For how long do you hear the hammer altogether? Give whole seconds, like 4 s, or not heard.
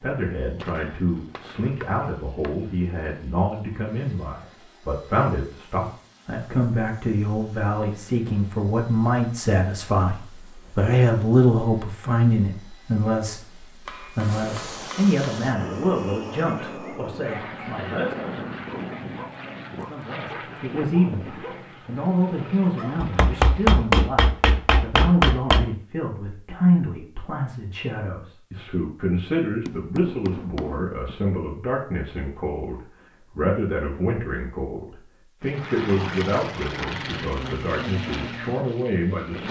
7 s.